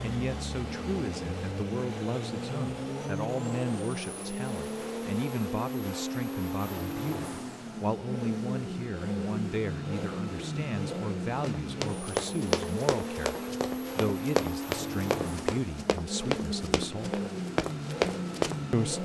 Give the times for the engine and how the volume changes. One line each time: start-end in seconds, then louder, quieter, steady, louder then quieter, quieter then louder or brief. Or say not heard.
0.0-18.9 steady.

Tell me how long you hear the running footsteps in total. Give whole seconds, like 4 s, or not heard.
7 s.